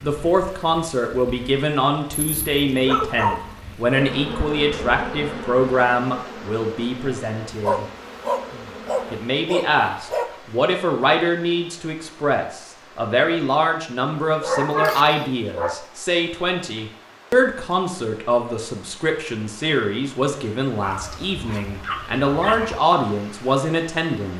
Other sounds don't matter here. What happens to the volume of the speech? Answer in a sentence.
The volume of the speech stays about the same.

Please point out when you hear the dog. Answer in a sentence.
The dog can be heard from 2.1 to 3.8 s, from 7.5 to 10.3 s, from 14.4 to 15.8 s and from 20.8 to 22.8 s.